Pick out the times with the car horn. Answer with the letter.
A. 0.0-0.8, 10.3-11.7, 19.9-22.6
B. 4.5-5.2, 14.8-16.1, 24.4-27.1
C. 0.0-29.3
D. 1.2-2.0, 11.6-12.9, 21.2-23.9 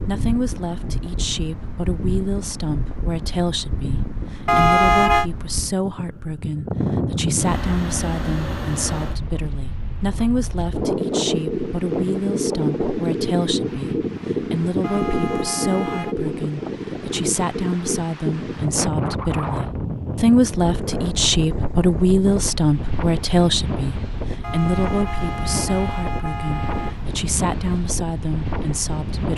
B.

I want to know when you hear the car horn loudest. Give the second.
5 s.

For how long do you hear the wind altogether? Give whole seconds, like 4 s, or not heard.
29 s.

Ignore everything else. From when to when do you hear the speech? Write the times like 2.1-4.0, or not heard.
0.0-29.3.